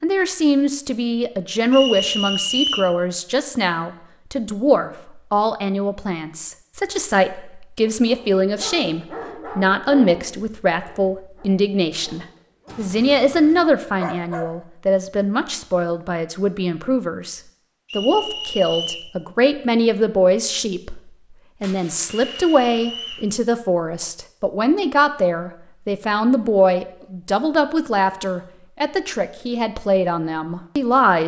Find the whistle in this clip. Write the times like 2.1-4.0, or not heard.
1.7-2.9, 17.9-19.1, 22.3-23.3.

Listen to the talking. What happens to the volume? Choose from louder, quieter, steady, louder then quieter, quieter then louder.
steady.